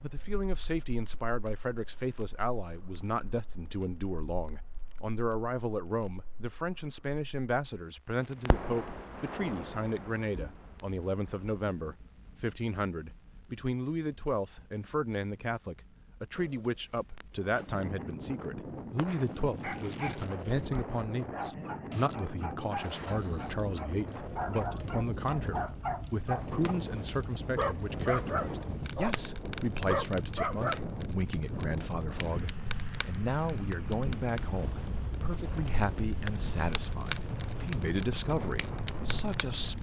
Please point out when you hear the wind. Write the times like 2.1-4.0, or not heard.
17.3-39.7.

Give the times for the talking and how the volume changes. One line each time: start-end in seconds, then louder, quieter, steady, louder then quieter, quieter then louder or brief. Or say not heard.
0.0-39.7 steady.